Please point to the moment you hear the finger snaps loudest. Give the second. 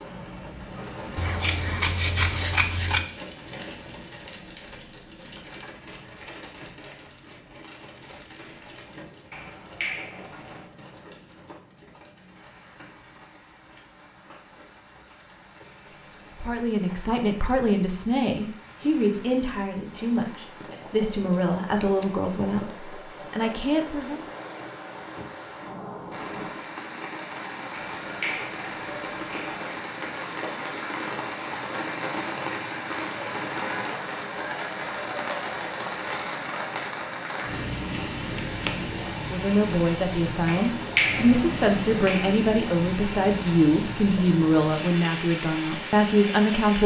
41 s.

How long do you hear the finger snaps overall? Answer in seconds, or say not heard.
5 s.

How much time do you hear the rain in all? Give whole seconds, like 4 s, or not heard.
47 s.